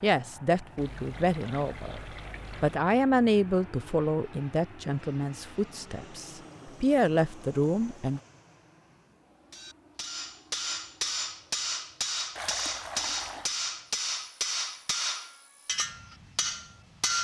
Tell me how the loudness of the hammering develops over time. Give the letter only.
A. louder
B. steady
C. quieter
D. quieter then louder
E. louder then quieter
B.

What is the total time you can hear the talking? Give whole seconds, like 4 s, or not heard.
8 s.